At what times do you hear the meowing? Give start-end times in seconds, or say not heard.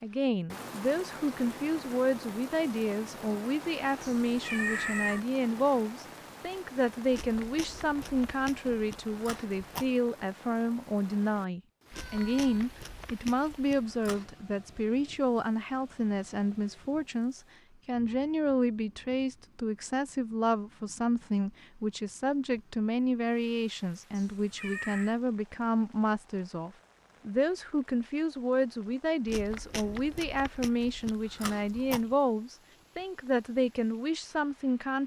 4.0-5.2, 11.9-12.7, 24.1-25.1.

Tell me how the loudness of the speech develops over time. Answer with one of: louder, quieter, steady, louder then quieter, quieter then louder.
steady.